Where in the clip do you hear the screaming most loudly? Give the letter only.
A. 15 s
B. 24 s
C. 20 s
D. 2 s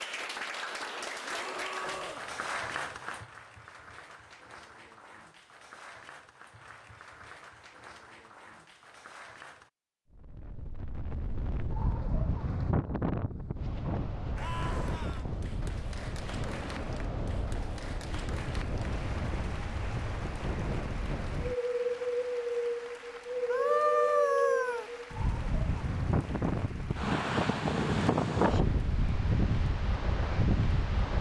B.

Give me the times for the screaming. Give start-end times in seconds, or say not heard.
1.2-2.2, 14.4-15.2, 23.5-24.9.